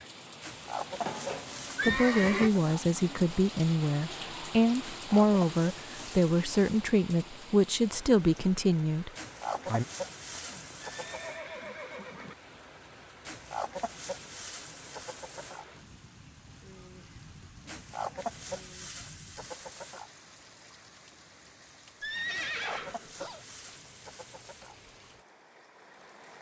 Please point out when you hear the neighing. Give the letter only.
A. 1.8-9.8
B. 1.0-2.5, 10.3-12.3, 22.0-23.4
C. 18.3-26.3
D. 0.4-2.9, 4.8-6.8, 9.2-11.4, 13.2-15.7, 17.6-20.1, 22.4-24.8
B.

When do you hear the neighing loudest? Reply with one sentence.
The loudest moment of the neighing is at 2 seconds.